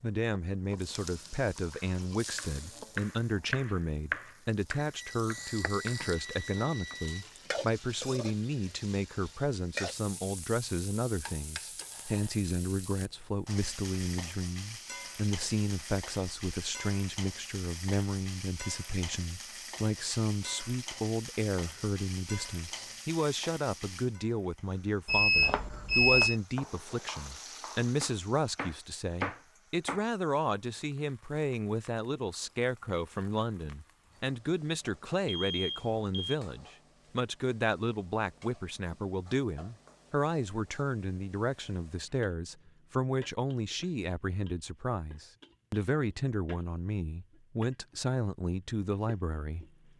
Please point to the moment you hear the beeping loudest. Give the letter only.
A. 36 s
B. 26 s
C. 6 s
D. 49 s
B.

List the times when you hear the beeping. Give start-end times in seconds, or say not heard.
5.0-7.2, 25.1-26.4, 35.2-36.4.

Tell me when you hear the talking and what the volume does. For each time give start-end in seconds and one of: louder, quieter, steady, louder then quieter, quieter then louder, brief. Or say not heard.
0.0-49.6 steady.